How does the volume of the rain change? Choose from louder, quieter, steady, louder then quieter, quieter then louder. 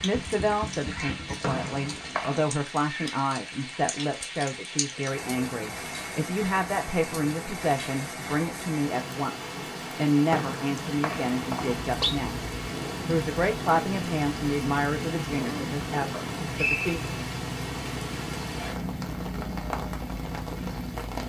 steady.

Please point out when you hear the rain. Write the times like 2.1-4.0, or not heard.
0.0-21.2.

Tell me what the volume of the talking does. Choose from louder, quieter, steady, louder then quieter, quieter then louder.
steady.